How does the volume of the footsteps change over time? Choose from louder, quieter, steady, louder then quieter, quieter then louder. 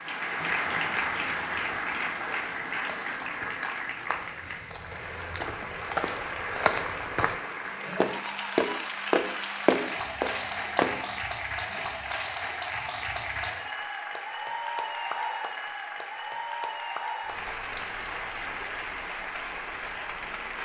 louder.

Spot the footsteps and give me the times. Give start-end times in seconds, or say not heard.
0.7-11.1.